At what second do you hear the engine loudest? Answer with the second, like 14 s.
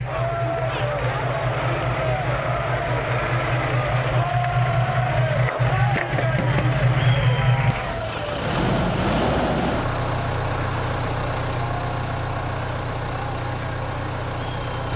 7 s.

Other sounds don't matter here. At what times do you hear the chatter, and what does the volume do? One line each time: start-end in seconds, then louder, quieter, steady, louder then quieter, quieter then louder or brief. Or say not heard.
0.0-14.8 quieter.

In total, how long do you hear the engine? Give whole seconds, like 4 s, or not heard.
15 s.